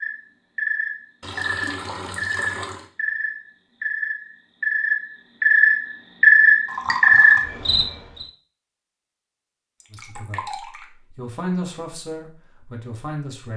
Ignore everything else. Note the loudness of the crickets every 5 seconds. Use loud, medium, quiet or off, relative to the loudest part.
medium, loud, off.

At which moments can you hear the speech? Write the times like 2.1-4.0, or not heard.
9.9-13.5.